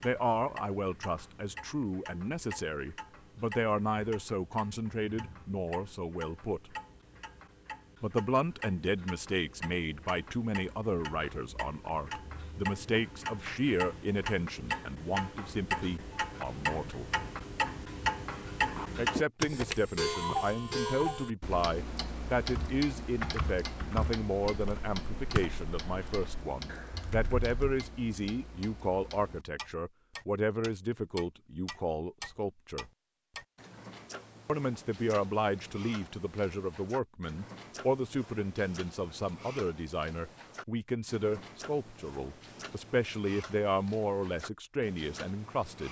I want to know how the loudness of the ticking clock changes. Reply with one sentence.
The volume of the ticking clock goes up, then down.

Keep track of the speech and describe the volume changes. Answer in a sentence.
The volume of the speech stays about the same.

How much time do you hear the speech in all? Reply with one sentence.
The speech can be heard for 41 seconds in total.